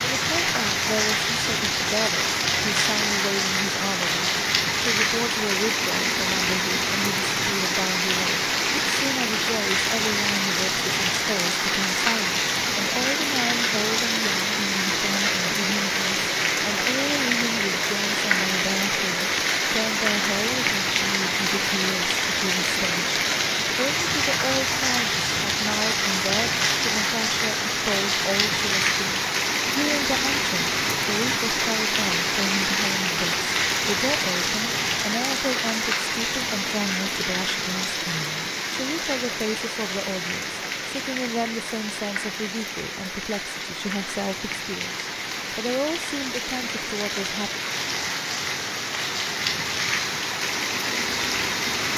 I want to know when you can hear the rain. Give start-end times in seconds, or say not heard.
0.0-51.9.